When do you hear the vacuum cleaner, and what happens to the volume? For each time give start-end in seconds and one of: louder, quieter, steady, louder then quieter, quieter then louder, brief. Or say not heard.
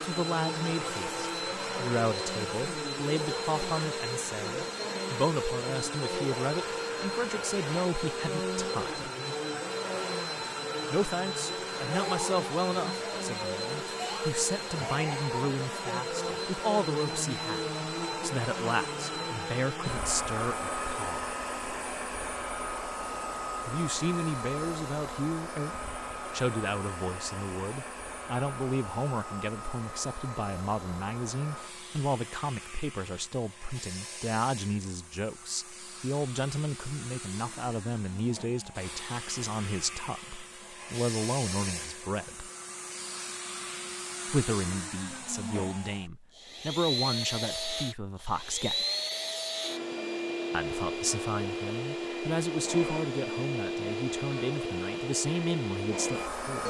0.0-56.6 quieter then louder.